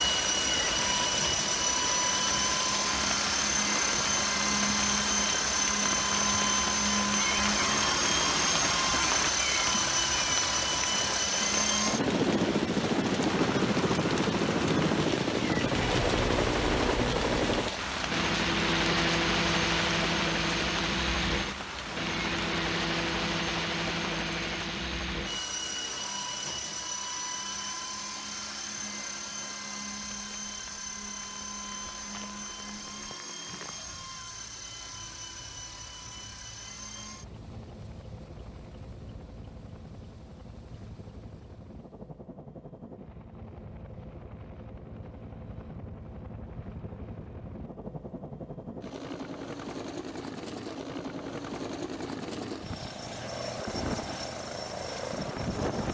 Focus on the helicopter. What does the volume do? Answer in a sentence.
The loudness of the helicopter goes down, then up.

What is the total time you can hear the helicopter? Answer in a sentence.
You can hear the helicopter for 56 seconds altogether.